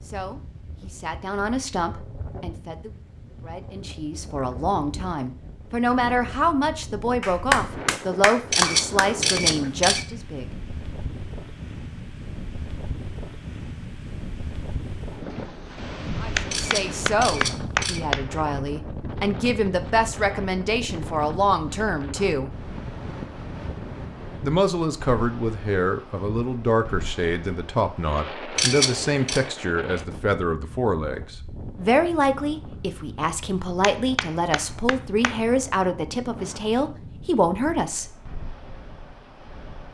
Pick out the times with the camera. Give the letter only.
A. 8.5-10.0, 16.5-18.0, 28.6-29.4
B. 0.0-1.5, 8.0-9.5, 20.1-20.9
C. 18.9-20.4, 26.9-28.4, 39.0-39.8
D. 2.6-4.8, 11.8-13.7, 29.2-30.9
A.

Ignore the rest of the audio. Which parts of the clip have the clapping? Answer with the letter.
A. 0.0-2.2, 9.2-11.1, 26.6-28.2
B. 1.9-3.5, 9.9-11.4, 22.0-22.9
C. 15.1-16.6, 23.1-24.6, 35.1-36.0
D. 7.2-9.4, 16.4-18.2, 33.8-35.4
D.